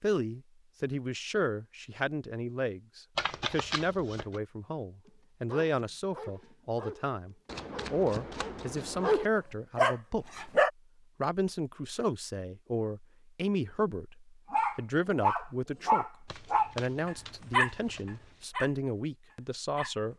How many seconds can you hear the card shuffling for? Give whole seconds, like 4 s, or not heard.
5 s.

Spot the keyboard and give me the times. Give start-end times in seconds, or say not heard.
not heard.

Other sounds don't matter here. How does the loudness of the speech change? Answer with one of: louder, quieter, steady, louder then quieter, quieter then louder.
steady.